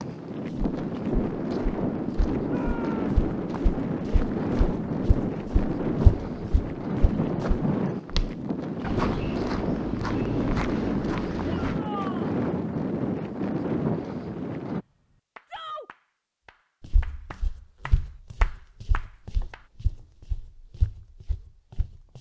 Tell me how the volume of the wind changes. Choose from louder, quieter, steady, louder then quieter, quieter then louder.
steady.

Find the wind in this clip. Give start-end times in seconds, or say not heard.
0.0-14.8.